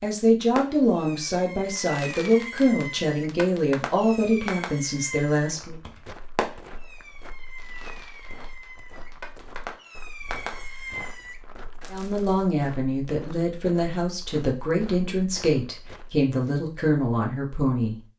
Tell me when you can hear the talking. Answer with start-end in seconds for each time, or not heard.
0.0-5.8, 11.9-17.9.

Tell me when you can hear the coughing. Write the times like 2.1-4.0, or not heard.
not heard.